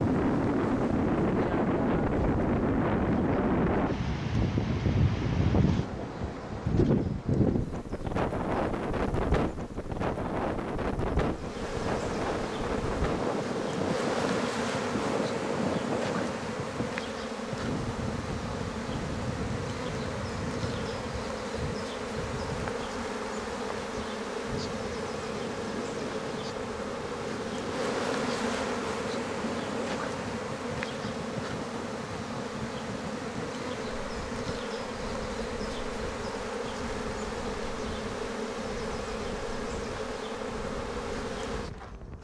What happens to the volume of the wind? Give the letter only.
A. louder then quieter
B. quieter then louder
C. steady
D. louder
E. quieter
E.